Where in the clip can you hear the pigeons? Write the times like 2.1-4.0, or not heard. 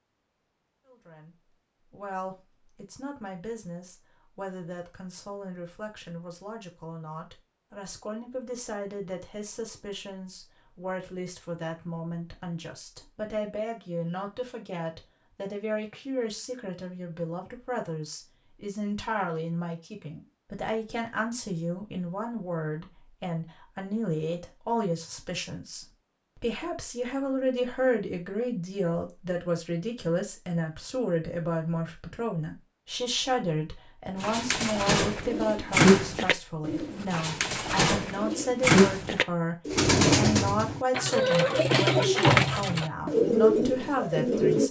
34.2-44.6.